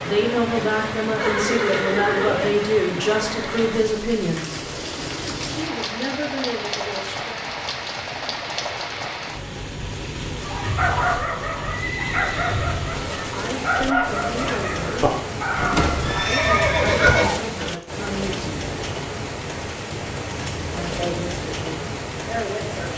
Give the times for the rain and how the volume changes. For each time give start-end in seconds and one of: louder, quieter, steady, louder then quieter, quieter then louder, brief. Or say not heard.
0.0-22.9 steady.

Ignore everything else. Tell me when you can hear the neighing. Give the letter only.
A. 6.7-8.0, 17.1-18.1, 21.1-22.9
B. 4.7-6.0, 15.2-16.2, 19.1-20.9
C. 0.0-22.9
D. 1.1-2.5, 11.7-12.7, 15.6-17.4
D.